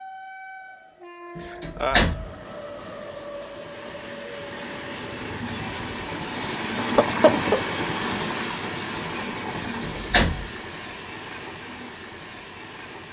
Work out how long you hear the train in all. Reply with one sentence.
You can hear the train for 13 seconds altogether.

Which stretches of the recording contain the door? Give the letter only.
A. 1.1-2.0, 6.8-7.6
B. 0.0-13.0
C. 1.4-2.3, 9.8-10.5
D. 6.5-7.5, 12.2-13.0
C.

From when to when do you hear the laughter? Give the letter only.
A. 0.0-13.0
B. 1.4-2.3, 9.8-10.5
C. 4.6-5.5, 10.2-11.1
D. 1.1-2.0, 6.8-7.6
D.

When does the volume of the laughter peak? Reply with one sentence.
The volume of the laughter peaks at 7 seconds.